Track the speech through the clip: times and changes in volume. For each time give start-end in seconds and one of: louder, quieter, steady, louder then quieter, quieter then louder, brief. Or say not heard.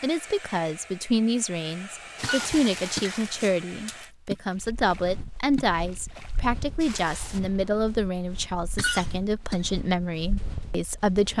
0.0-11.3 steady.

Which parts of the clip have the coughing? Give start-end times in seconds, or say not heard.
2.2-3.6, 8.8-9.6.